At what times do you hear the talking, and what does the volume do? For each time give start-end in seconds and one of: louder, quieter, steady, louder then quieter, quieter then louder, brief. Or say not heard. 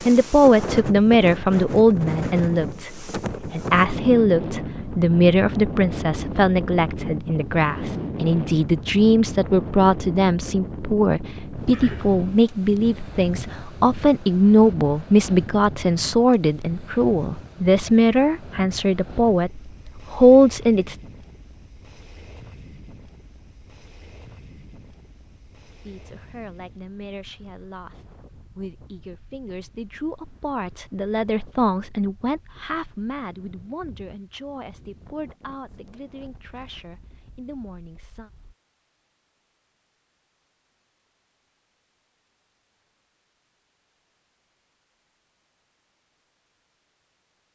0.0-20.9 steady
25.9-38.3 louder then quieter.